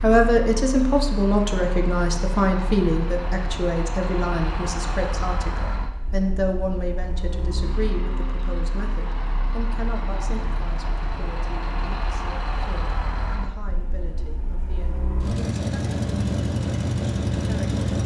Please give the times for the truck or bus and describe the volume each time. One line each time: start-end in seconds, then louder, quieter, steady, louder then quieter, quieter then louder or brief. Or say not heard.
0.0-18.0 louder.